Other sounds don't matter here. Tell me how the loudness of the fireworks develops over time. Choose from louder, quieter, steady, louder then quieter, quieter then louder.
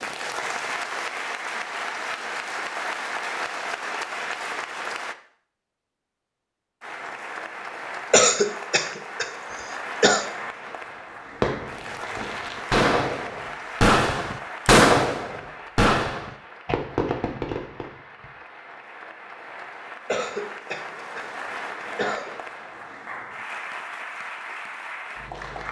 louder then quieter.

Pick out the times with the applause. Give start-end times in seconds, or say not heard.
0.0-5.2, 6.8-25.6.